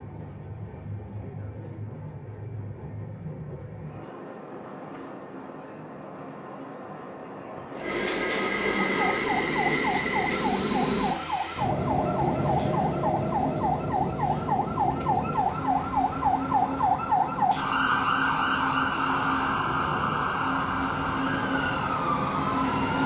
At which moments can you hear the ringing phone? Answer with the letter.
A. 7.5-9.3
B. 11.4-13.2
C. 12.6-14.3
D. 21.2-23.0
A.